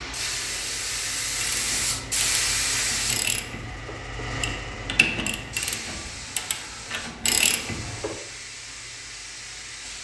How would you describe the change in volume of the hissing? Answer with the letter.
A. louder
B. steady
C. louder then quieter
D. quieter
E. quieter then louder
D.